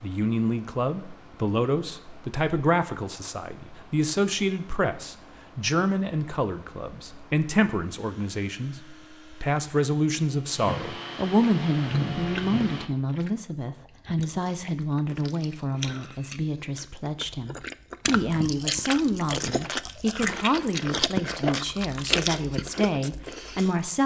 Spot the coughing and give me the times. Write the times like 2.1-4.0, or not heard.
not heard.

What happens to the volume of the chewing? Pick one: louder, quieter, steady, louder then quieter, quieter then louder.
louder.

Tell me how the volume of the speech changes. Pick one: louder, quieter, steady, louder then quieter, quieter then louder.
steady.